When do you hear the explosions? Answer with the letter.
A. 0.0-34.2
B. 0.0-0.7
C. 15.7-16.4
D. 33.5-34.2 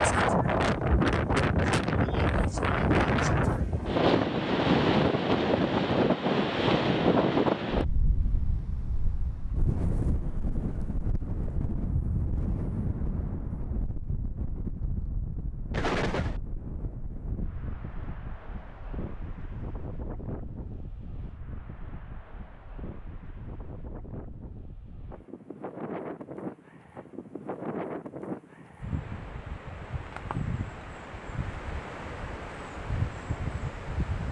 C.